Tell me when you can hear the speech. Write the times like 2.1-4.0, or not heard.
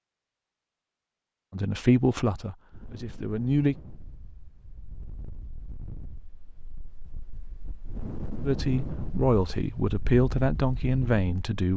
1.5-3.8, 8.4-11.7.